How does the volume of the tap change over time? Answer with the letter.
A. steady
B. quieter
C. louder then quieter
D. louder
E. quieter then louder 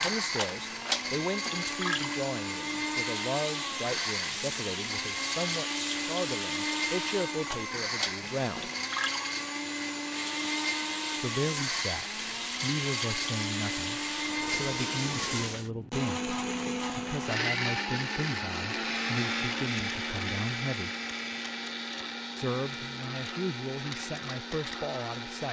A.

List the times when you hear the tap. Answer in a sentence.
You can hear the tap from 0.0 to 15.7 s.